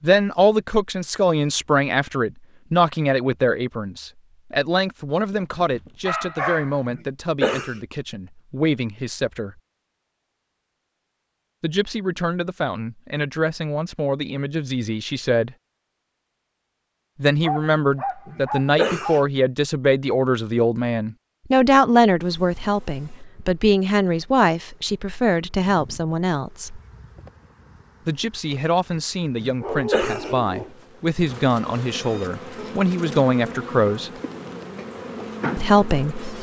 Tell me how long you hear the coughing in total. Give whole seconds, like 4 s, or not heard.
3 s.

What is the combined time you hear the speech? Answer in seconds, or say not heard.
30 s.